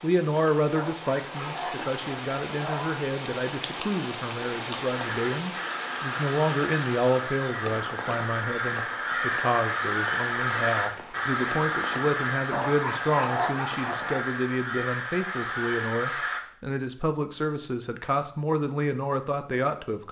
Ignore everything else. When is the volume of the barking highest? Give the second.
13 s.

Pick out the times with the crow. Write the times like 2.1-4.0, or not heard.
4.9-16.4.